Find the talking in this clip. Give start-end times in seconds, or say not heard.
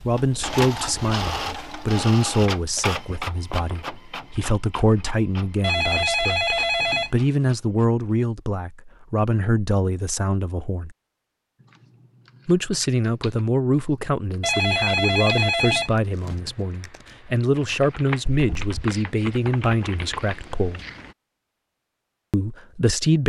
0.0-10.9, 12.4-20.8, 22.3-23.2.